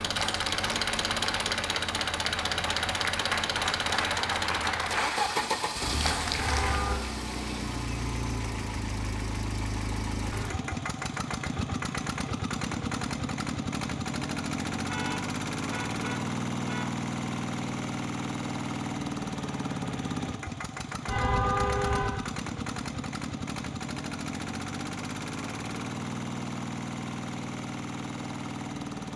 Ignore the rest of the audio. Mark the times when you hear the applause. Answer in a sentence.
The applause can be heard from 0.0 to 6.8 s.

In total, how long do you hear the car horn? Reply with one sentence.
The car horn can be heard for 4 seconds in total.